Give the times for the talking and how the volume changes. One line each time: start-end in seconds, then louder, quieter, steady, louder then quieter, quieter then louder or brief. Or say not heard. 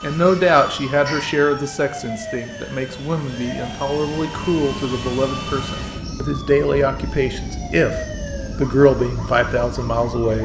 0.0-10.4 quieter then louder.